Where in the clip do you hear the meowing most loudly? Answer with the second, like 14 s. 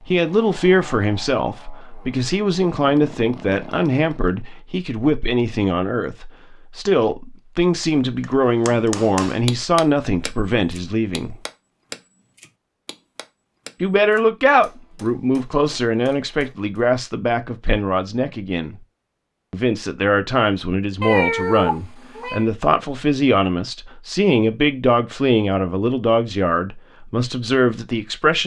21 s.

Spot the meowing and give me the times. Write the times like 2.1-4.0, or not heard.
21.0-22.4.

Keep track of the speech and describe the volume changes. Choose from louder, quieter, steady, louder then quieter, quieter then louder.
steady.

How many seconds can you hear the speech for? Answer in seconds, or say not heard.
25 s.